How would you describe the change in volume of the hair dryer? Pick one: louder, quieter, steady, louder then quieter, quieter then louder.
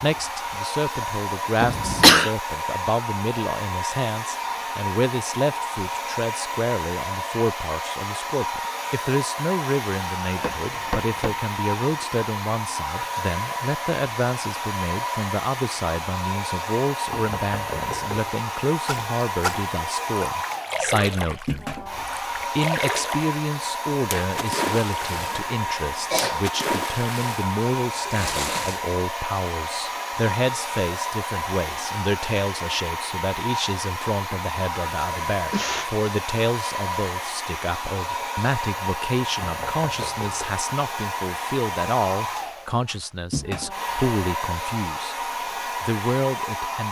steady.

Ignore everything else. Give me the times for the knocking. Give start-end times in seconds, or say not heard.
10.3-11.4, 17.1-18.4, 39.4-40.5.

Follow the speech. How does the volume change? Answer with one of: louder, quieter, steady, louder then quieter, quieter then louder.
steady.